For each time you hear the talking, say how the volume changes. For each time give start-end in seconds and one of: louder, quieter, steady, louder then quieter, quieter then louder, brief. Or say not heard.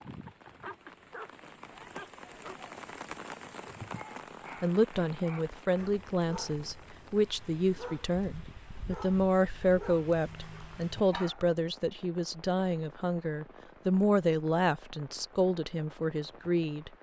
4.6-16.9 steady.